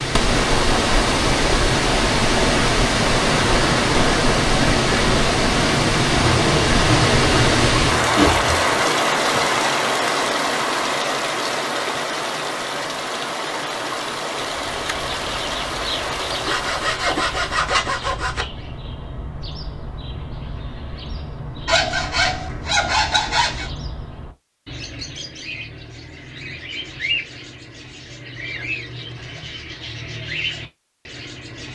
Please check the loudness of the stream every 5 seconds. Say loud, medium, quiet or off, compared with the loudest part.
loud, loud, medium, medium, off, off, off.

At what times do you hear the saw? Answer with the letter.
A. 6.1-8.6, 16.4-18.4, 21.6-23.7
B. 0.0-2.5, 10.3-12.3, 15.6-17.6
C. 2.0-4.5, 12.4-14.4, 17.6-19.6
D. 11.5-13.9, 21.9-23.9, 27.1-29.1
A.